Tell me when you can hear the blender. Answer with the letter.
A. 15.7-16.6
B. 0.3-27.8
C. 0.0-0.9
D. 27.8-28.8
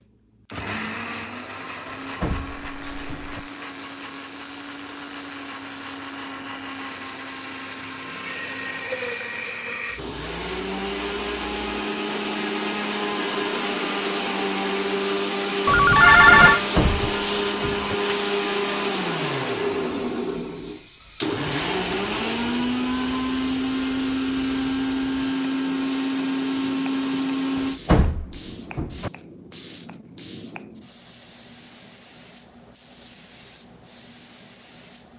B.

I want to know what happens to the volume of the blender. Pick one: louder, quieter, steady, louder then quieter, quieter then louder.
louder.